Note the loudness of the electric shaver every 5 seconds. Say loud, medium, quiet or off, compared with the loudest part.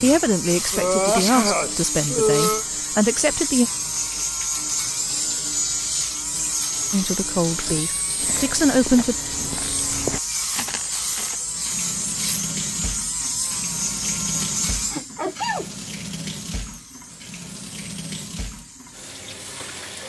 loud, loud, loud, quiet.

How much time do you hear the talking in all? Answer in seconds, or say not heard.
6 s.